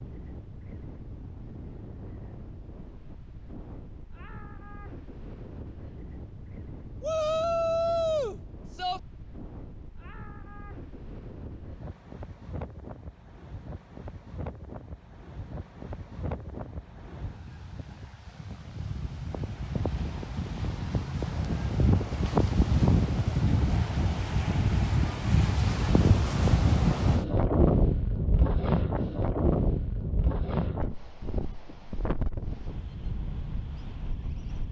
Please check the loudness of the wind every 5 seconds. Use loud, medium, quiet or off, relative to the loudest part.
quiet, quiet, quiet, quiet, loud, loud, medium.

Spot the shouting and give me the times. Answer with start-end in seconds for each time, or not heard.
7.0-9.0.